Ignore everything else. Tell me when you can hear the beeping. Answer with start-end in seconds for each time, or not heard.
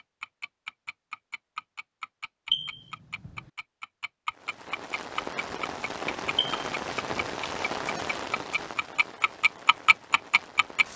2.5-3.5, 6.3-7.3.